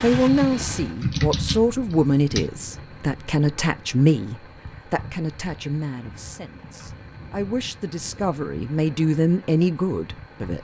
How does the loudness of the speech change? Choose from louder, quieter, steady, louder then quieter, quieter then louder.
quieter then louder.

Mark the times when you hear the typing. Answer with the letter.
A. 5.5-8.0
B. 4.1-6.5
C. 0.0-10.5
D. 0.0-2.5
D.